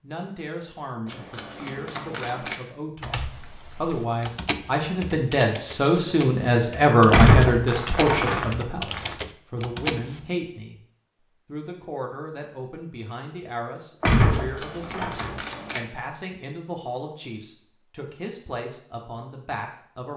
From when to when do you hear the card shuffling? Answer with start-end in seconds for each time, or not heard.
1.1-2.6, 7.5-9.2, 14.3-15.8.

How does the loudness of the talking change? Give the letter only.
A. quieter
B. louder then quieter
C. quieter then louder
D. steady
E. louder
B.